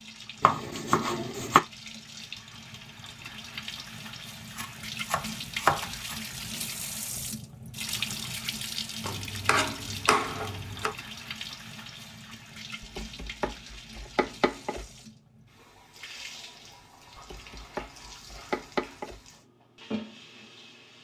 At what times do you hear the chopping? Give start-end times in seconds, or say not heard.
0.4-1.6, 4.5-6.2, 9.0-10.9, 12.8-14.8, 17.1-19.2.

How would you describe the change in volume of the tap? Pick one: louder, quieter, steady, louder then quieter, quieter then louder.
louder then quieter.